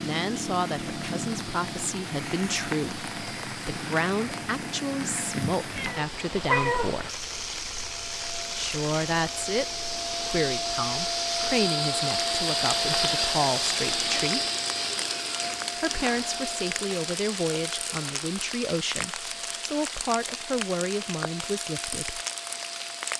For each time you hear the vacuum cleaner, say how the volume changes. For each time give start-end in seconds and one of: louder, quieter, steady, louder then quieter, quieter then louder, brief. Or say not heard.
0.0-23.1 louder then quieter.